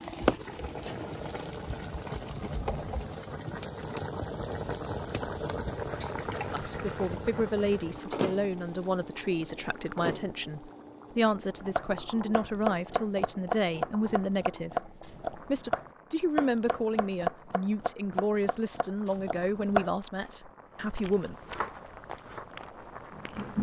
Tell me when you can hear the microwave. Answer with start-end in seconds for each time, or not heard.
not heard.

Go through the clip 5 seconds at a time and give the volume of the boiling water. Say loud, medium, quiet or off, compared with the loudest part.
loud, loud, medium, quiet, quiet.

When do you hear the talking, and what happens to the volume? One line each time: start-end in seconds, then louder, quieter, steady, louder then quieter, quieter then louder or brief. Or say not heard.
6.5-21.4 steady.